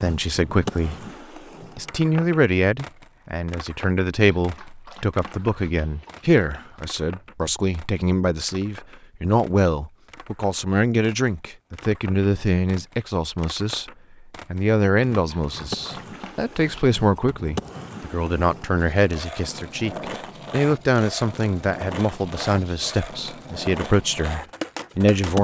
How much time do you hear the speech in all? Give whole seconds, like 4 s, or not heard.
24 s.